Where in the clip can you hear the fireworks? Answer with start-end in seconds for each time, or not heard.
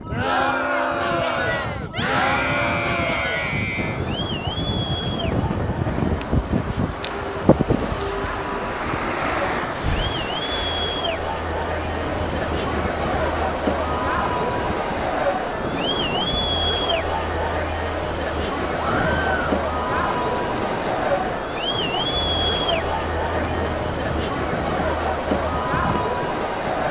not heard.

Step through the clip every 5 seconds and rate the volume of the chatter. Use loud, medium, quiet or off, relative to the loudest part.
loud, medium, loud, loud, loud, loud.